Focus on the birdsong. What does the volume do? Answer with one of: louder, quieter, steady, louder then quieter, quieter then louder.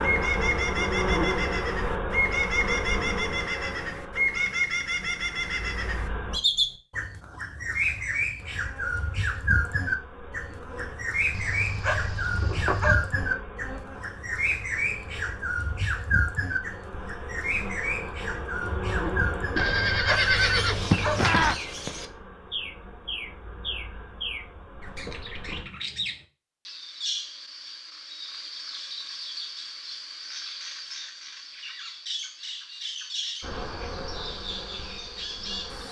quieter.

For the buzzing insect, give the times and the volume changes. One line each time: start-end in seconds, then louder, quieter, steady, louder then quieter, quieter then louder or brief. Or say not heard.
0.0-6.4 quieter
8.4-25.6 louder then quieter
33.4-35.8 brief.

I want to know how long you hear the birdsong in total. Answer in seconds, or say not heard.
36 s.